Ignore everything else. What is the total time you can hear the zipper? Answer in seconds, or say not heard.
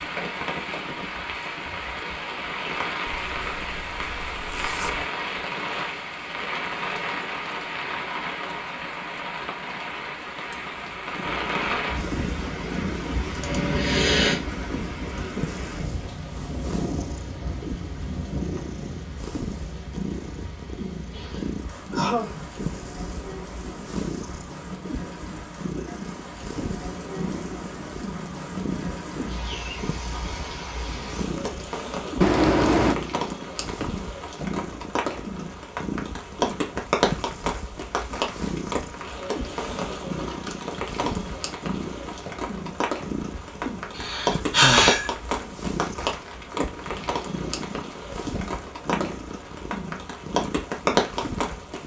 3 s.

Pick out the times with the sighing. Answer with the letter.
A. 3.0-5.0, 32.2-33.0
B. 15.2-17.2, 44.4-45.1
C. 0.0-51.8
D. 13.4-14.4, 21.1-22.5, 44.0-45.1
D.